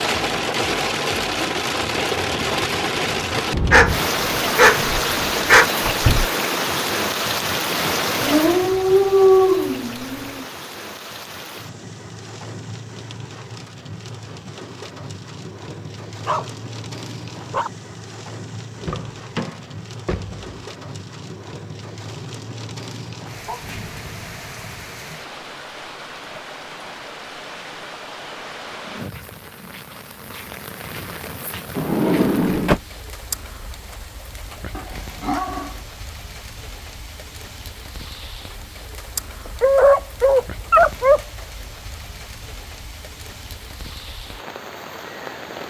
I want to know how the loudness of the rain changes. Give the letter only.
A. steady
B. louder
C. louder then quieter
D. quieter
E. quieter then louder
D.